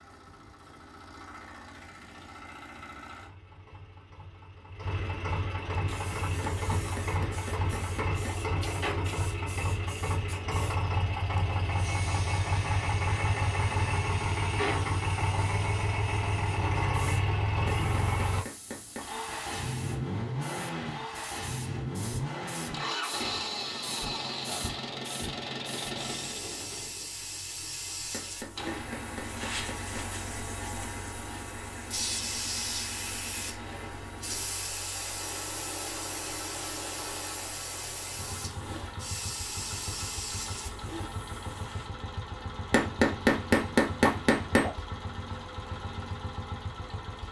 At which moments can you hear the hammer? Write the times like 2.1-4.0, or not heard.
6.5-8.4, 17.6-19.1, 28.1-30.1, 42.7-44.7.